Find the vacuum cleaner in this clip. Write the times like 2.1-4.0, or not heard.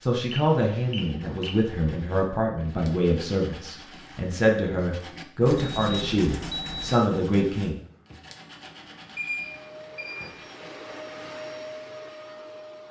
9.3-12.8.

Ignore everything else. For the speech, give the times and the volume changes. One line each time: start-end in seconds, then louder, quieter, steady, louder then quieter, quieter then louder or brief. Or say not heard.
0.0-7.8 steady.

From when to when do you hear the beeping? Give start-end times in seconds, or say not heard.
0.3-1.6, 5.4-7.0, 8.8-10.3.